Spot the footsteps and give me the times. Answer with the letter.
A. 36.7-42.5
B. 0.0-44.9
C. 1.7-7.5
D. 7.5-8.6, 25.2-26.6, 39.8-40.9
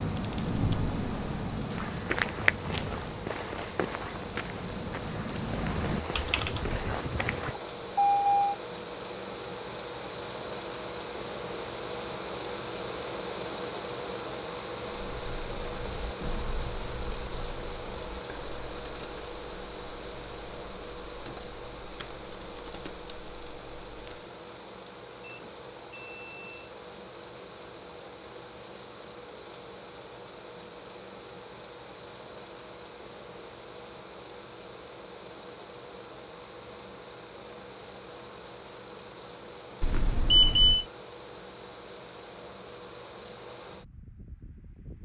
C.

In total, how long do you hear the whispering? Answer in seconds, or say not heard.
not heard.